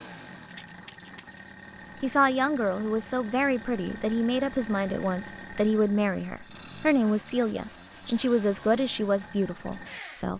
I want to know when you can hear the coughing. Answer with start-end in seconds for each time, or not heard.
not heard.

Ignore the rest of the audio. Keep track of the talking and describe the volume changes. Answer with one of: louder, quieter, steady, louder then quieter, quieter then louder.
steady.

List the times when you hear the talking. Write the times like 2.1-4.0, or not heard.
2.0-10.3.